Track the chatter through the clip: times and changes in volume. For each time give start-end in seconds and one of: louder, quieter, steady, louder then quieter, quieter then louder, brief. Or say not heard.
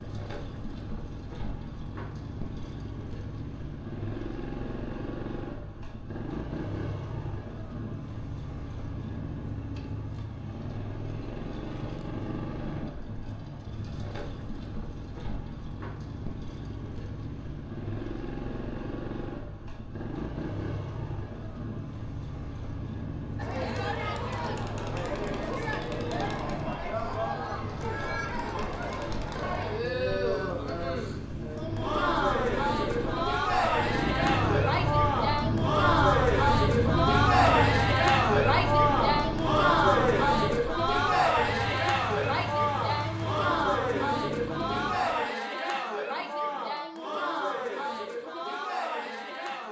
23.4-49.6 louder then quieter.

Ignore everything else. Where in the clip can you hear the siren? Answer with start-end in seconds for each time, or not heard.
not heard.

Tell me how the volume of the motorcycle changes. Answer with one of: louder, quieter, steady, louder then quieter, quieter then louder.
louder.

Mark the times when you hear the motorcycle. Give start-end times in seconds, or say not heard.
0.0-45.3.